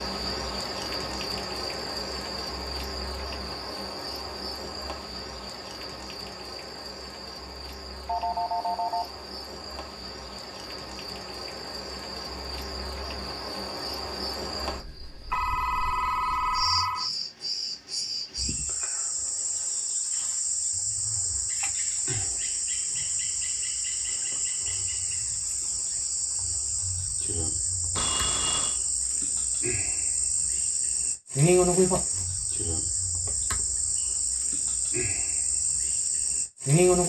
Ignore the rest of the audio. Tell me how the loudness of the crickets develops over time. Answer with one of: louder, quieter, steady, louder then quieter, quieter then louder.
louder.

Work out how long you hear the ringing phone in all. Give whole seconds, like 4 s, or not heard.
4 s.